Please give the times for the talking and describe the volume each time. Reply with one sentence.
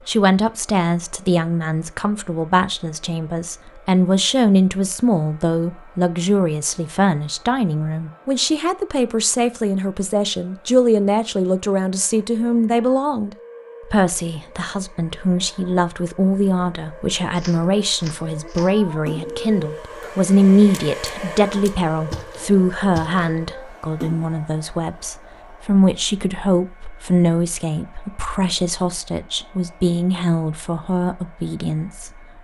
You can hear the talking from 0.1 to 32.3 s, at a steady volume.